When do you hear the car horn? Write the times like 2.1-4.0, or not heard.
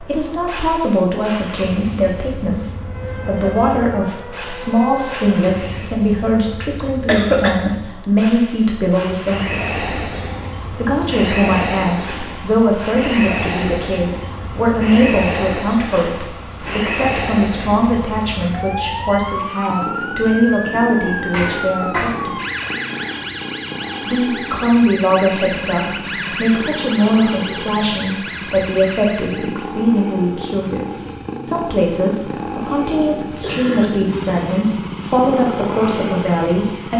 not heard.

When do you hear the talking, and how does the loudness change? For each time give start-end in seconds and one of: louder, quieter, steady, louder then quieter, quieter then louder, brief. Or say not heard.
0.0-9.8 steady
10.7-22.4 steady
24.1-36.9 steady.